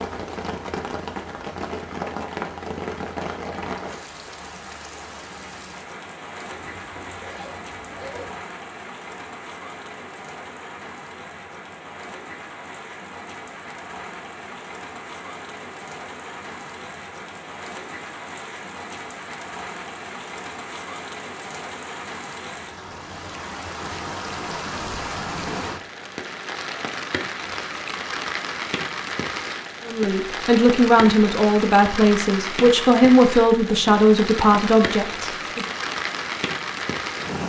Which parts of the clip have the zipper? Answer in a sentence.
You can hear the zipper from 6.5 to 8.4 s.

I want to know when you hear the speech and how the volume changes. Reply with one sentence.
The speech can be heard from 29.9 to 35.6 s, at a steady volume.